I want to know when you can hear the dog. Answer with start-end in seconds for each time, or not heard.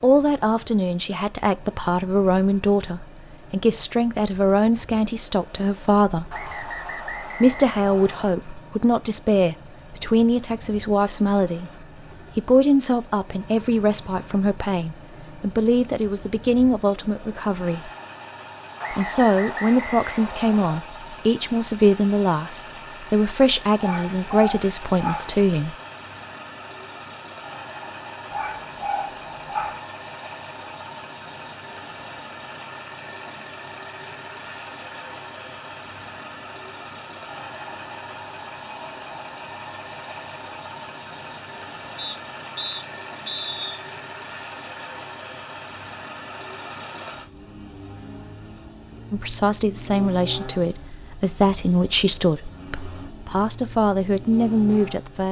23.8-25.3, 28.3-29.8.